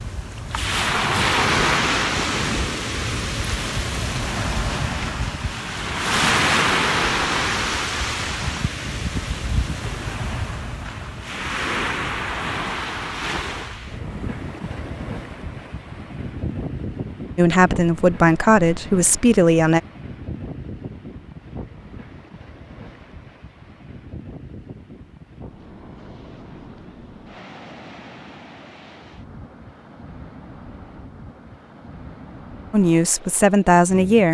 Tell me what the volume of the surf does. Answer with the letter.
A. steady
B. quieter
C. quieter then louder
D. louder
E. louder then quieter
B.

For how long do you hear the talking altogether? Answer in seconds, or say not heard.
4 s.